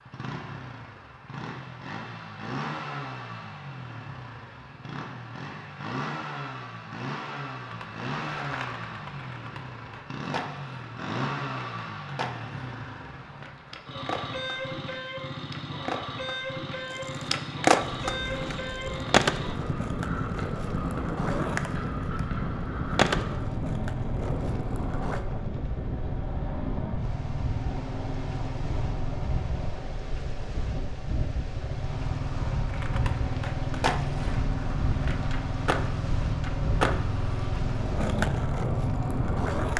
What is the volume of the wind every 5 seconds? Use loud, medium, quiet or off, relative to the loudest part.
off, off, off, loud, loud, loud, loud, loud.